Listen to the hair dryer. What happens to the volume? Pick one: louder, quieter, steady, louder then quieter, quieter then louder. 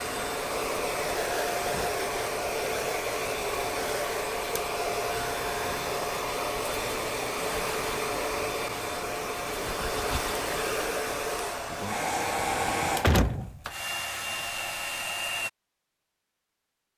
steady.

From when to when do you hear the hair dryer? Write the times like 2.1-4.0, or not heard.
0.0-15.5.